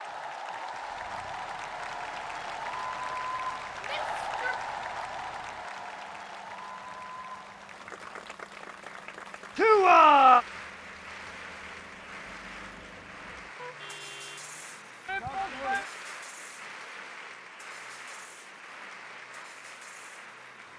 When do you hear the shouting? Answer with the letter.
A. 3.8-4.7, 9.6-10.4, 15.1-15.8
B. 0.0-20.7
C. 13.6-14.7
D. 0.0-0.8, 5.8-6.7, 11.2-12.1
A.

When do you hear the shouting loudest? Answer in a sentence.
The loudest moment of the shouting is at 10 seconds.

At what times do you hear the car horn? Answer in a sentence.
You can hear the car horn from 13.6 to 14.7 s.